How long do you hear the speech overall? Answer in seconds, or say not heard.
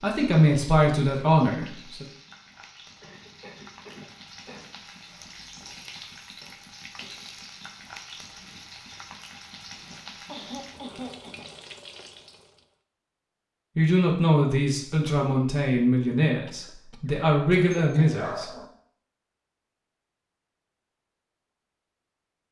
7 s.